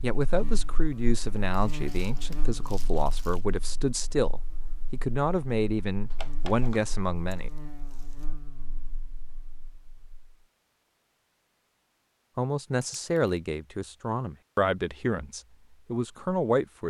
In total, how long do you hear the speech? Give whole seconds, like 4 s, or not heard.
12 s.